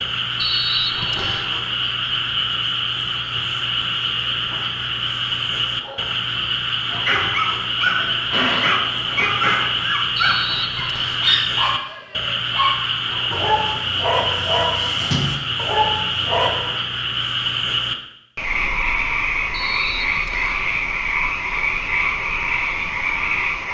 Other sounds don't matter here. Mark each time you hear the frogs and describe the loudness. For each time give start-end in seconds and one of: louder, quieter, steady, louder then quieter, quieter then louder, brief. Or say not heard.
0.0-23.6 steady.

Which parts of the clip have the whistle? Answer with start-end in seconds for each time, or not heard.
0.3-1.5, 10.2-11.3, 19.5-20.6.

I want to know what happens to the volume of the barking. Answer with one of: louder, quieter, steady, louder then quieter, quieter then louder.
steady.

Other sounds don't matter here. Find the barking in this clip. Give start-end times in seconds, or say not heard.
5.8-16.6.